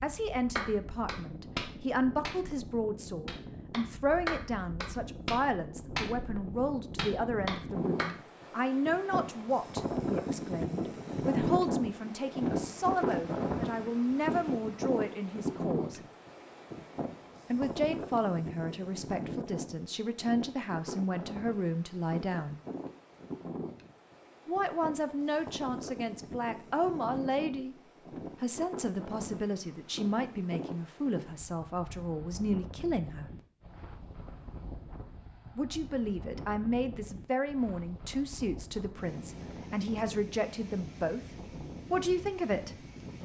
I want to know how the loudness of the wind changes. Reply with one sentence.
The volume of the wind goes up, then down.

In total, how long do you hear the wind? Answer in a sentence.
You can hear the wind for 43 seconds altogether.